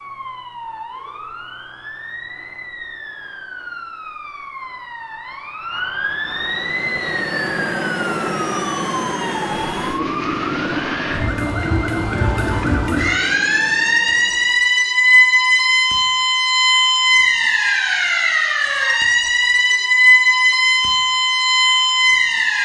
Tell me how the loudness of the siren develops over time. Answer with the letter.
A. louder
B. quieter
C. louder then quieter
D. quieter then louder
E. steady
A.